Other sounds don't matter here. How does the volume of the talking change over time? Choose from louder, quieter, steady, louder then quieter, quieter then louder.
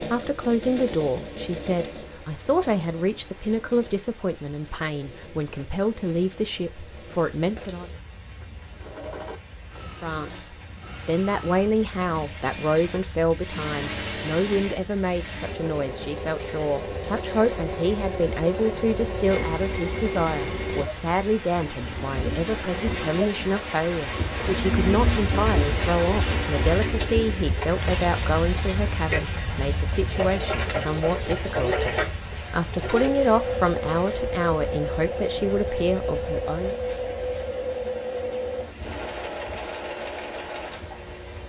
steady.